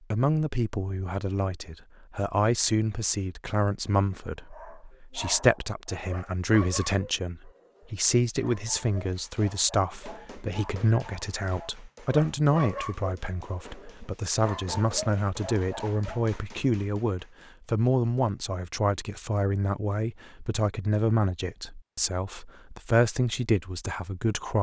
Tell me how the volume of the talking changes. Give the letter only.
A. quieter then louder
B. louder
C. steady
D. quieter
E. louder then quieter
C.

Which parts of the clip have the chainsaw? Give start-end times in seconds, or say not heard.
not heard.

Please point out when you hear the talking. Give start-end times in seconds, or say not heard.
0.1-24.5.